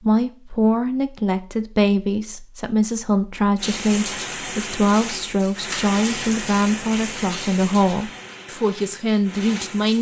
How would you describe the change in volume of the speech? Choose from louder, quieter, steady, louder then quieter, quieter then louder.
steady.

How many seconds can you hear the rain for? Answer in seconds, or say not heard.
6 s.